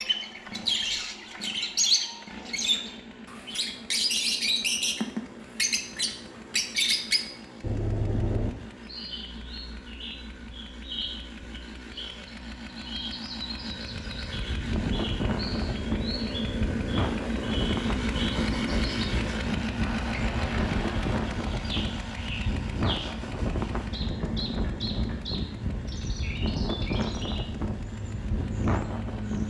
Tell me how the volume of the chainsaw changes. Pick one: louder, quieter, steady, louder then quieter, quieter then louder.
louder then quieter.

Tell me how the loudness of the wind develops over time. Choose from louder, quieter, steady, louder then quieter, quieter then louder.
steady.